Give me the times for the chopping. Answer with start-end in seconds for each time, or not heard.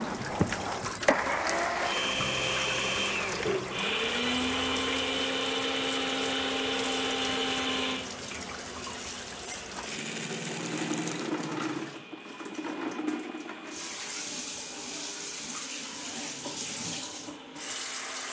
not heard.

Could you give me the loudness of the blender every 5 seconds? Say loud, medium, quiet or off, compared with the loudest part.
loud, loud, quiet, quiet.